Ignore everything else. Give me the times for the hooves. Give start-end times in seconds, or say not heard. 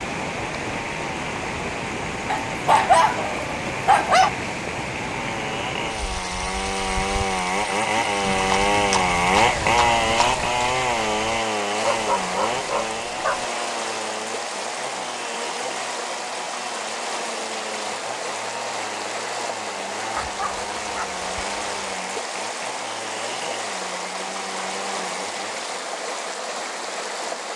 8.2-11.3.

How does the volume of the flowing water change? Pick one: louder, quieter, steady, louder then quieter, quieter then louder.
steady.